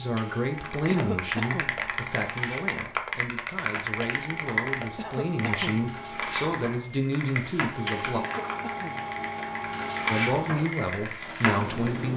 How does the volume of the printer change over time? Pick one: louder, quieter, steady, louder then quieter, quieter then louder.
louder.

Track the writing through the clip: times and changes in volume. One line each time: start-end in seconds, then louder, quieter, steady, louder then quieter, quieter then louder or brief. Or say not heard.
not heard.